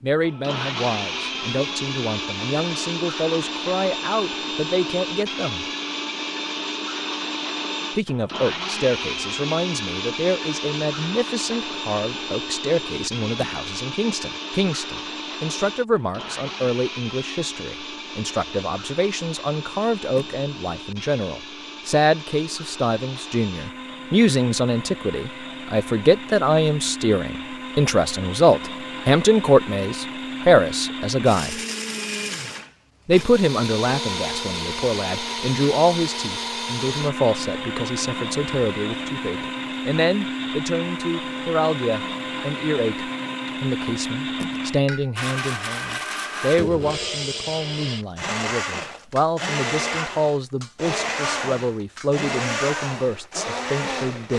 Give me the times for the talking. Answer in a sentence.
The talking can be heard from 0.0 to 5.7 s, from 8.0 to 31.6 s and from 33.0 to 54.3 s.